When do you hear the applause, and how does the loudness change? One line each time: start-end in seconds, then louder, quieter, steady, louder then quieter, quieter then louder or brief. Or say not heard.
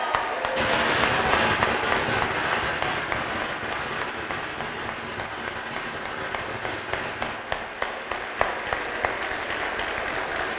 0.0-10.5 quieter then louder.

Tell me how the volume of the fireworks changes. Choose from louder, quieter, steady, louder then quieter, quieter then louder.
quieter.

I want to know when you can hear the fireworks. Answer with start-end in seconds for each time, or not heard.
0.6-7.4.